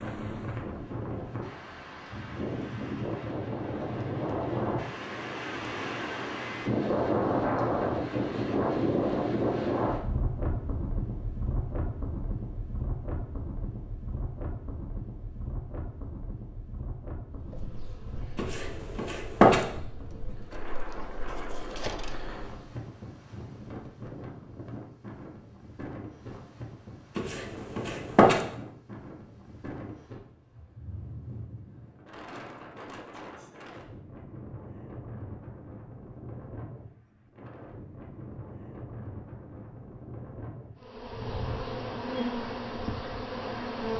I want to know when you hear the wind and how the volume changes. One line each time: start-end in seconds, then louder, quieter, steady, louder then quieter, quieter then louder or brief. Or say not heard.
0.0-43.9 quieter.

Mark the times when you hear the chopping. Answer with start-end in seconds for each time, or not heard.
18.4-19.6, 27.1-28.4.